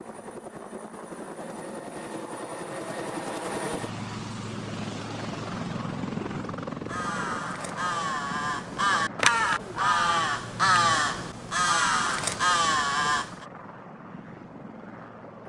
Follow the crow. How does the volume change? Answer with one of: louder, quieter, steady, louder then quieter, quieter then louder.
louder.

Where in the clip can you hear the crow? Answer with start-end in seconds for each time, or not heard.
6.8-13.4.